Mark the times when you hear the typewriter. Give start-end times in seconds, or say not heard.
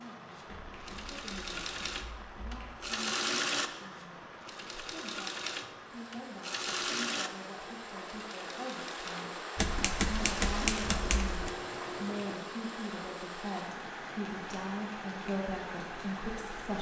0.5-2.9, 9.6-11.6.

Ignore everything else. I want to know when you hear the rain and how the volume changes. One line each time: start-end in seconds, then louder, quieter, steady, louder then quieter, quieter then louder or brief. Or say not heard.
0.0-16.7 louder.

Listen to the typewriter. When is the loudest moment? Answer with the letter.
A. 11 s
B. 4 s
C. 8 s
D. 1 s
A.